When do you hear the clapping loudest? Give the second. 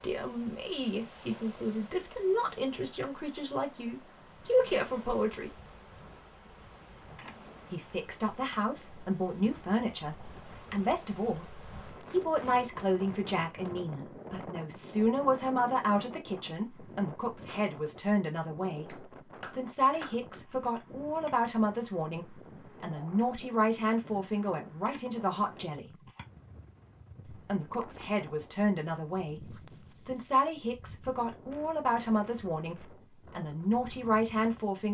20 s.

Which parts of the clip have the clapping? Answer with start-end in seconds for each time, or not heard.
18.9-20.4.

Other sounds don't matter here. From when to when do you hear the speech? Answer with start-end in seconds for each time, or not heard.
0.0-5.5, 7.7-25.9, 27.2-34.8.